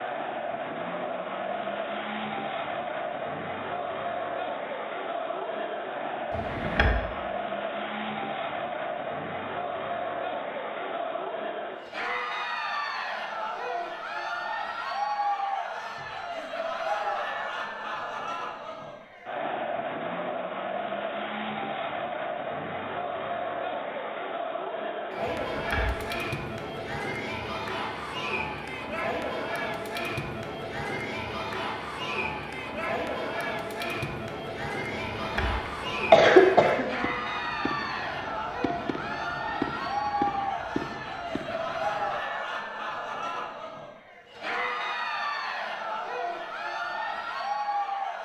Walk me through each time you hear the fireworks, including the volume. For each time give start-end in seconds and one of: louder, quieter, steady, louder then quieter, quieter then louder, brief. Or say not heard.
36.7-42.2 louder then quieter.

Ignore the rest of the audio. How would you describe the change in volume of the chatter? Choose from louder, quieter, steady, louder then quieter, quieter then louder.
steady.